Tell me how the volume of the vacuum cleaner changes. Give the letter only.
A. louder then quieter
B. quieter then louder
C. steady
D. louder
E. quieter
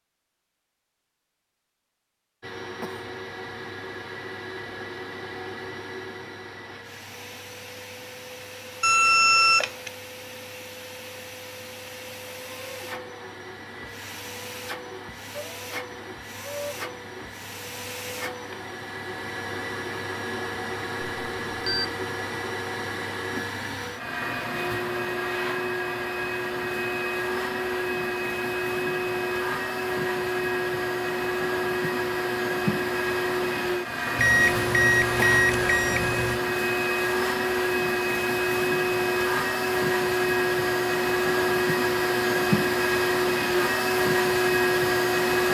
D.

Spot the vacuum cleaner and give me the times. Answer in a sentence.
You can hear the vacuum cleaner from 2.4 to 45.4 s.